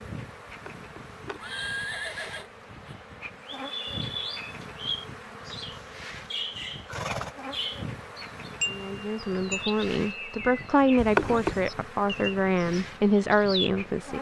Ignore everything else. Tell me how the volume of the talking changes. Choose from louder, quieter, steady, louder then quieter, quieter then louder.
louder.